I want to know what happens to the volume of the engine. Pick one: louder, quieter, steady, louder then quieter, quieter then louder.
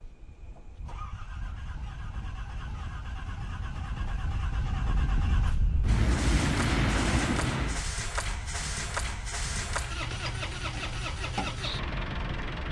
louder.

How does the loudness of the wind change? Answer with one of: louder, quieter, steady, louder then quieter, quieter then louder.
louder then quieter.